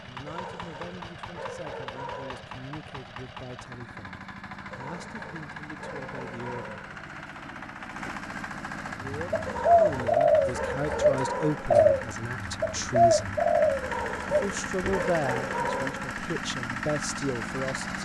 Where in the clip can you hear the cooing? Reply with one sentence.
The cooing can be heard from 9.1 to 15.0 s.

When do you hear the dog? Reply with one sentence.
You can hear the dog from 0.2 to 2.5 s, from 4.7 to 7.0 s, from 9.4 to 11.7 s and from 13.8 to 16.2 s.